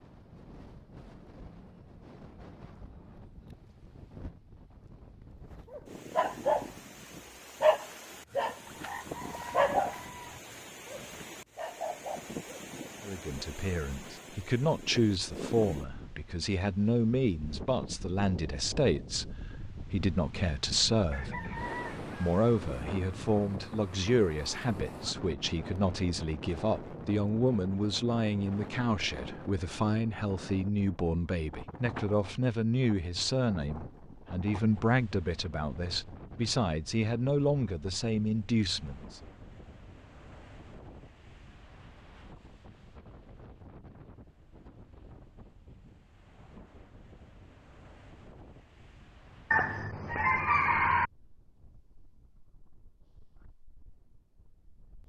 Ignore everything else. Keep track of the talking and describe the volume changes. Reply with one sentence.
The loudness of the talking stays about the same.